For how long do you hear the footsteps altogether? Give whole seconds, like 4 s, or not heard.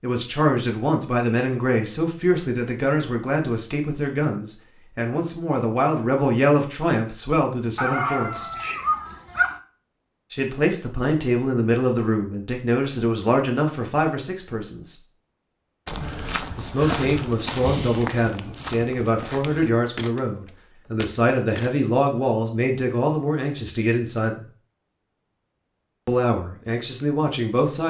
6 s.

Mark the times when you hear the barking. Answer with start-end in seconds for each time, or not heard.
7.8-9.6.